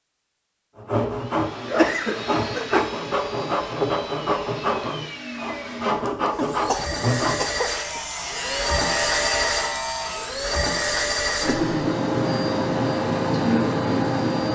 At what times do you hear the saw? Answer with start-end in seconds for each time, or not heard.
0.8-10.3.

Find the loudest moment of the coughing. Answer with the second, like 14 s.
2 s.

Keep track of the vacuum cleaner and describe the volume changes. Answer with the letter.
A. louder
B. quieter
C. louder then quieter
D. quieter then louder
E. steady
A.